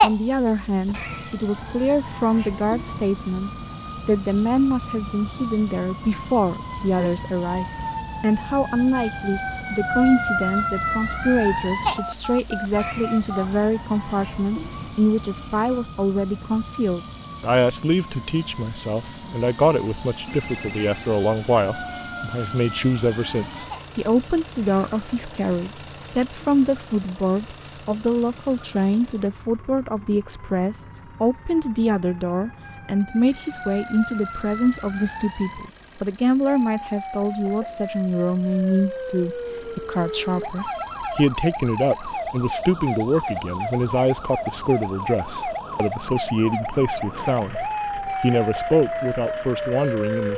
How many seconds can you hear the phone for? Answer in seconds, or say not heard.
3 s.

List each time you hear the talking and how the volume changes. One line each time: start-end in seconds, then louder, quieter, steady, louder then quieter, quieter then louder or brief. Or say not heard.
0.0-50.3 steady.